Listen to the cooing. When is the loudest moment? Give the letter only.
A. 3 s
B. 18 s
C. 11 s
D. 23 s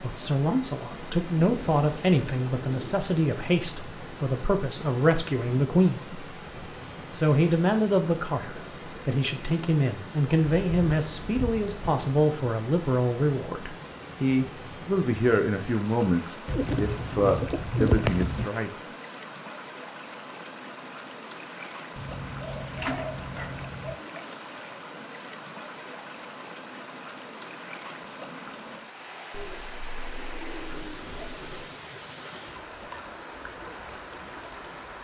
B.